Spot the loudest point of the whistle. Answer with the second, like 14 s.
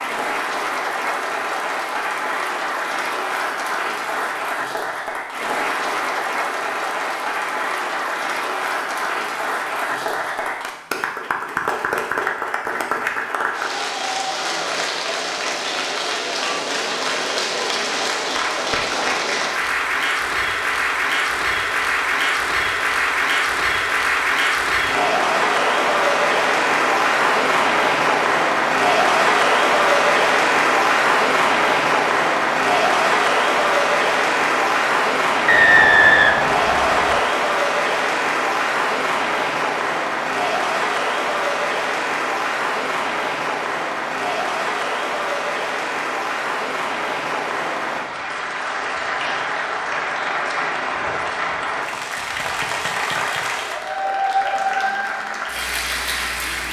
36 s.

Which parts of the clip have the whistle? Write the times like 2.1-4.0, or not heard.
35.5-37.2.